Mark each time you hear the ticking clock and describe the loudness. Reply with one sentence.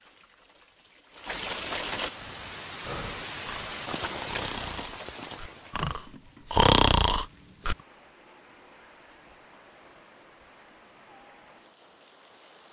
The ticking clock can't be heard in this clip.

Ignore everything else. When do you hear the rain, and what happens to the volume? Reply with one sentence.
You can hear the rain from 0.0 to 12.6 s, getting quieter.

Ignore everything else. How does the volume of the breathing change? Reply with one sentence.
The loudness of the breathing goes up.